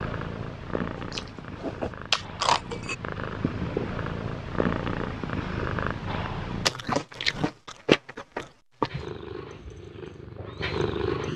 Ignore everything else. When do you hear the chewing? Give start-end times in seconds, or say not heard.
0.9-3.0, 6.7-9.1.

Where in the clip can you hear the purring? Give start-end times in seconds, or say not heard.
0.0-6.7, 8.8-11.3.